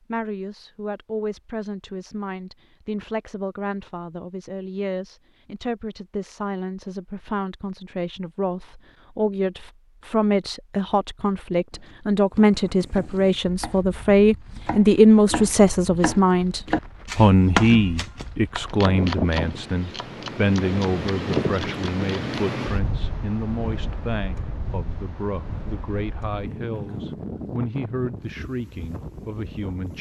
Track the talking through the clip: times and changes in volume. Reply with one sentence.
You can hear the talking from 0.1 to 29.9 s, getting louder then quieter.